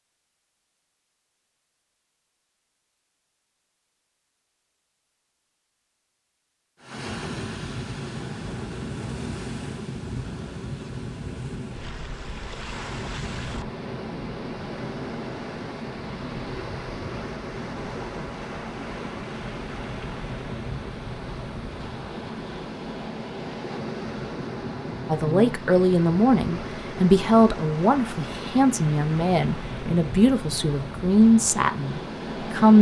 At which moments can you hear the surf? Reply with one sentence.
The surf can be heard from 6.8 to 32.7 s.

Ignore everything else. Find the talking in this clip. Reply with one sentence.
The talking can be heard from 25.1 to 32.7 s.